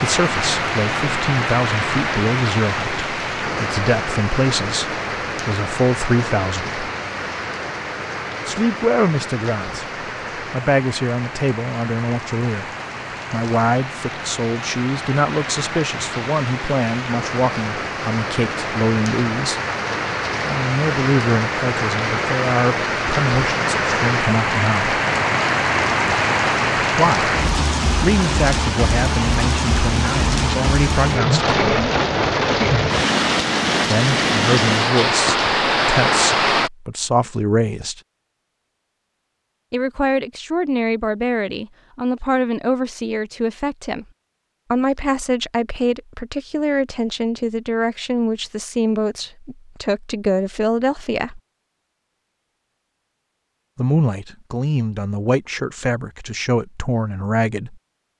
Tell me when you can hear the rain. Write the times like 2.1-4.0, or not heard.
0.0-36.7.